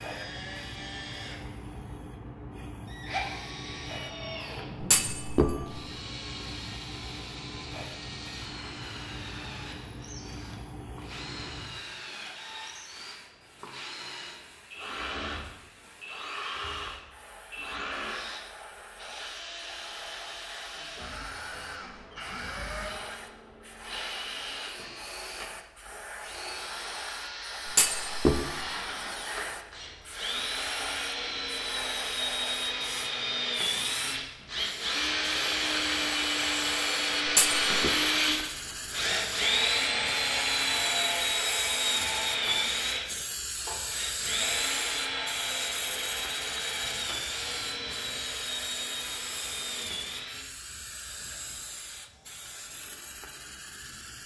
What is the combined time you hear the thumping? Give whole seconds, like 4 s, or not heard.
3 s.